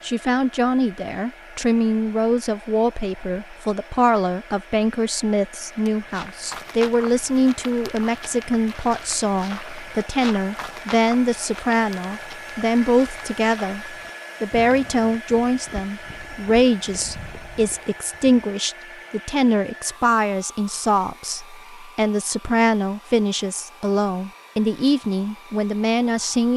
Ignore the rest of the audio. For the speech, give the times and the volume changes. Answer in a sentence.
The speech can be heard from 0.0 to 13.8 s, at a steady volume; and from 14.4 to 26.5 s, at a steady volume.